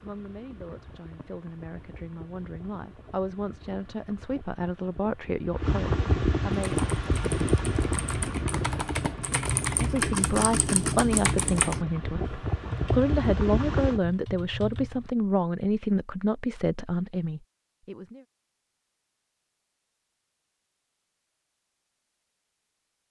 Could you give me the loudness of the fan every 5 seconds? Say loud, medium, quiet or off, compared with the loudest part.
quiet, loud, loud, off, off.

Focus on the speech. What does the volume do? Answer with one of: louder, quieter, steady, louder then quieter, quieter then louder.
louder.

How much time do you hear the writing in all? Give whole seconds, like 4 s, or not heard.
not heard.